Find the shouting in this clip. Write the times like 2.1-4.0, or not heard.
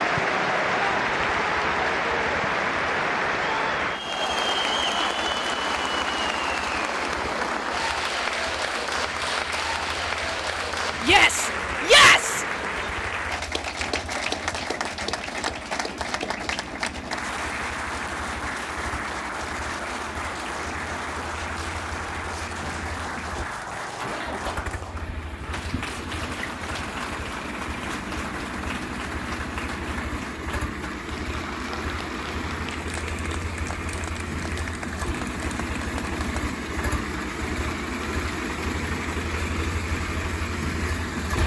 11.0-12.4.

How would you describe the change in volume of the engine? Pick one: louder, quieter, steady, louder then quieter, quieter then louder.
louder.